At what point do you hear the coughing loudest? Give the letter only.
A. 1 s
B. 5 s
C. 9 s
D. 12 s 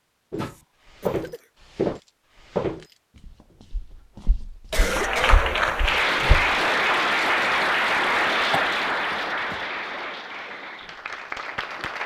B.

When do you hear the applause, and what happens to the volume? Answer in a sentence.
The applause can be heard from 4.9 to 12.0 s, getting quieter.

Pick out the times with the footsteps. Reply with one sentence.
The footsteps can be heard from 0.3 to 6.5 s.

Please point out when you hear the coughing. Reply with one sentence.
You can hear the coughing from 0.4 to 1.4 s, from 4.7 to 5.4 s and from 8.5 to 9.6 s.